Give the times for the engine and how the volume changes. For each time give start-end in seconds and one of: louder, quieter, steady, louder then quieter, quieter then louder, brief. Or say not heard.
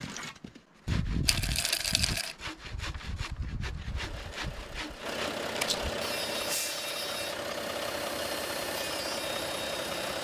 3.7-10.1 louder.